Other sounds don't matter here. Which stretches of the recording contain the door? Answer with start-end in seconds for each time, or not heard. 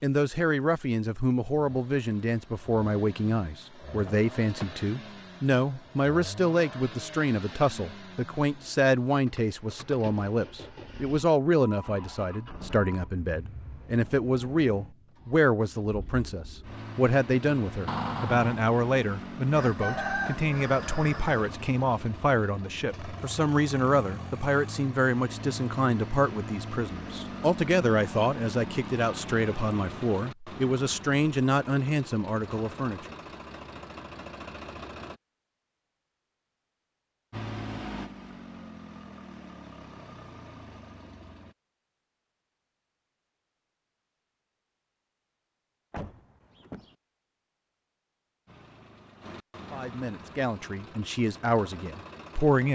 4.0-4.8, 17.9-18.6, 45.9-47.0.